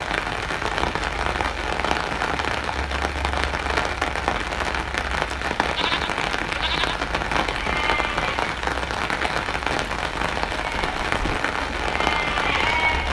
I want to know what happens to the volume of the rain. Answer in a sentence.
The volume of the rain stays about the same.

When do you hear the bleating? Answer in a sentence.
You can hear the bleating from 5.7 to 8.5 s and from 10.6 to 13.0 s.